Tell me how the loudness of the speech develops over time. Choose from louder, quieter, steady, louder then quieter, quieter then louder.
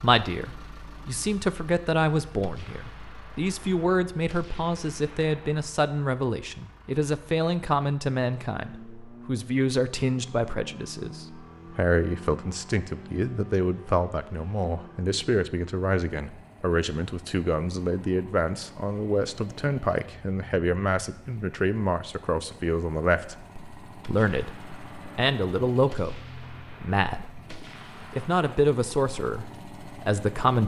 steady.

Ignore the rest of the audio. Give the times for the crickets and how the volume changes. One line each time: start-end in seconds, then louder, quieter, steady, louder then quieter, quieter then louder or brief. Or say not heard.
not heard.